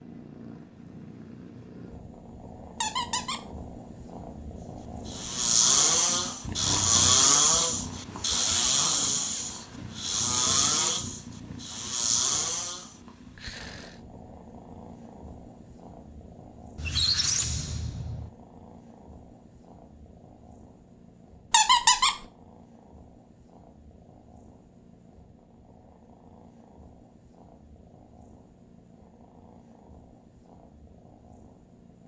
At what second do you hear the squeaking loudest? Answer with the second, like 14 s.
22 s.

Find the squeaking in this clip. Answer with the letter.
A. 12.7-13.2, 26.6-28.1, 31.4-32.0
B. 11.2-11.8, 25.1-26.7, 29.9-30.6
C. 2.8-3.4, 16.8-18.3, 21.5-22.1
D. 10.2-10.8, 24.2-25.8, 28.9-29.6
C.